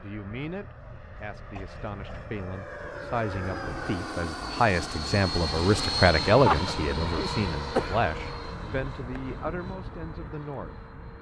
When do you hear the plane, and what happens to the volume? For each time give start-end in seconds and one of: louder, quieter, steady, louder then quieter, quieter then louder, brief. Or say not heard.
0.0-11.1 louder then quieter.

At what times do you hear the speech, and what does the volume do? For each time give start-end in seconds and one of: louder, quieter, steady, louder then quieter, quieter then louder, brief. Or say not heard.
0.0-11.1 louder then quieter.